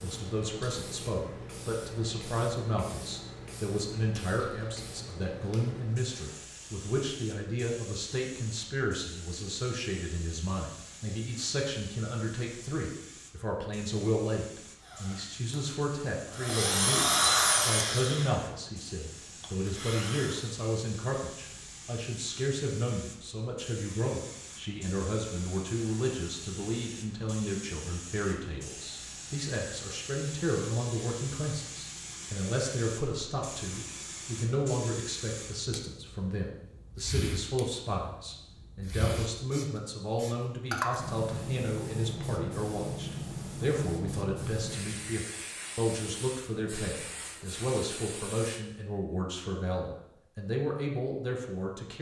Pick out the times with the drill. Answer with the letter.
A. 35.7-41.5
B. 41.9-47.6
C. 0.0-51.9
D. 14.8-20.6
D.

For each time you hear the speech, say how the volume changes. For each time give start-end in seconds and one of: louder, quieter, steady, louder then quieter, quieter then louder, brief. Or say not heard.
0.0-51.9 steady.